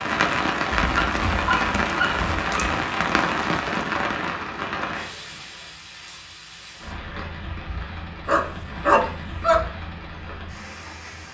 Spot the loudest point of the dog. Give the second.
9 s.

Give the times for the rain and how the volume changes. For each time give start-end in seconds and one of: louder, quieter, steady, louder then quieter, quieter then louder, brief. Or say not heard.
0.0-11.2 quieter.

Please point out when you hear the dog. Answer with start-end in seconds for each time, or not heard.
0.7-2.8, 8.2-9.7.